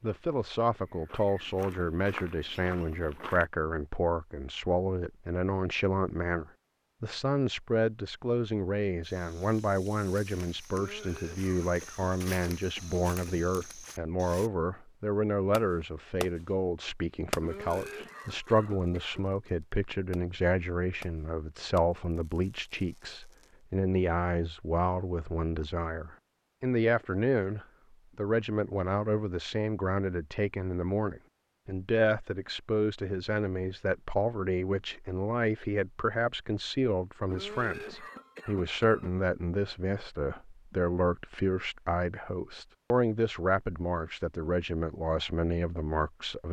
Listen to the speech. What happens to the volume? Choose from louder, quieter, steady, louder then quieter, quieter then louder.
steady.